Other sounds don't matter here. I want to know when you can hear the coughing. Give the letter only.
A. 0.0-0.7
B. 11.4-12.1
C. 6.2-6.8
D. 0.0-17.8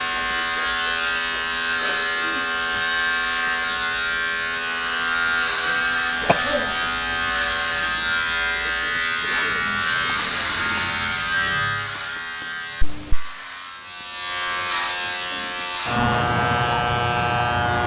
C.